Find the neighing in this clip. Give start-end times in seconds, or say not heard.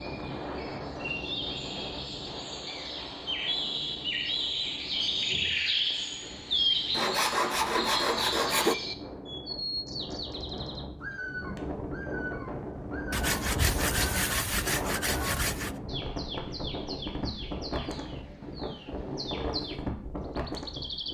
not heard.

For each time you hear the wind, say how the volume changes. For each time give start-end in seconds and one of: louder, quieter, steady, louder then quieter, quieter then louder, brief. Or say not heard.
0.0-21.0 quieter then louder.